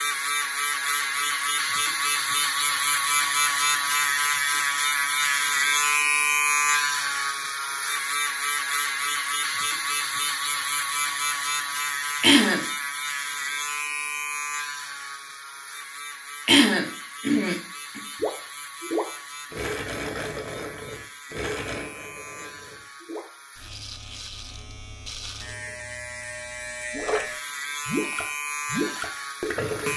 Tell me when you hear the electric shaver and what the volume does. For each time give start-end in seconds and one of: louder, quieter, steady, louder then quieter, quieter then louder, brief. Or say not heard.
0.0-29.9 quieter then louder.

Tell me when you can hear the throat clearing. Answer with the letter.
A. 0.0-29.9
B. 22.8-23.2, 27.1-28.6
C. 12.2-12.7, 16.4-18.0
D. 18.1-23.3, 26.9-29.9
C.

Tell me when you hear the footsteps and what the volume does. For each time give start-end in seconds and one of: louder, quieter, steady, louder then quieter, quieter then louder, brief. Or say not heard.
not heard.